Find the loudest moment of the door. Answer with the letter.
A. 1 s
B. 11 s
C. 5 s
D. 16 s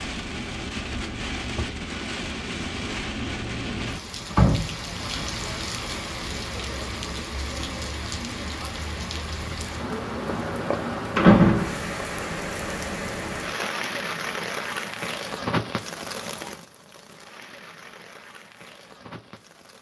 B.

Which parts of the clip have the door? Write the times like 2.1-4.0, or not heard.
4.2-5.2, 10.4-12.1.